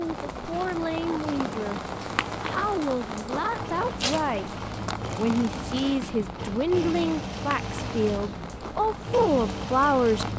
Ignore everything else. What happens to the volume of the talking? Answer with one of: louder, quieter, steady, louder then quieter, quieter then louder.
louder.